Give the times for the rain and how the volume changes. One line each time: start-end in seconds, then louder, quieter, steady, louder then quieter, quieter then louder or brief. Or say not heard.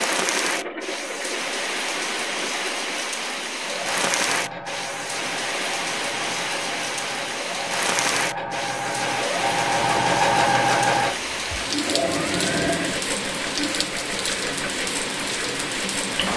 0.0-16.3 steady.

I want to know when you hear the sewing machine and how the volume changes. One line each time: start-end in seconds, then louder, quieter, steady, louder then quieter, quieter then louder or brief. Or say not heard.
0.0-16.3 louder then quieter.